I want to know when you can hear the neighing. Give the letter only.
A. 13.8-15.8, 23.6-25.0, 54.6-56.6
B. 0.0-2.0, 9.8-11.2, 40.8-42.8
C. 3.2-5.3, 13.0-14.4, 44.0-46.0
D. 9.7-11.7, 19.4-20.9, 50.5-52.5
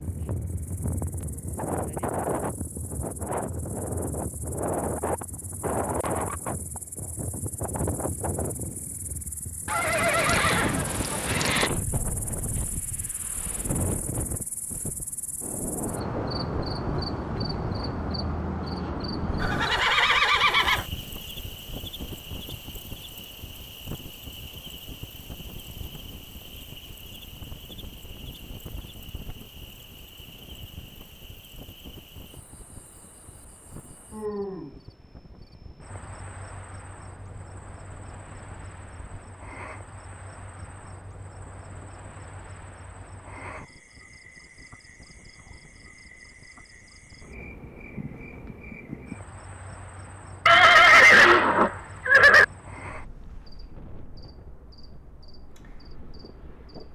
D.